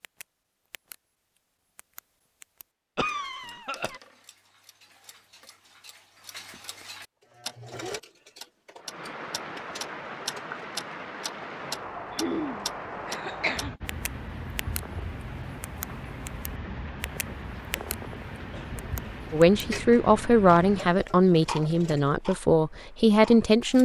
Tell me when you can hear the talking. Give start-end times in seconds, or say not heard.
19.3-23.8.